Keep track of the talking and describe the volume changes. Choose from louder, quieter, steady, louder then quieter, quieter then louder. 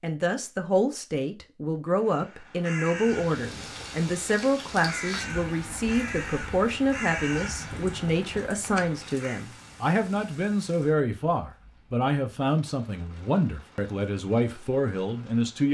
steady.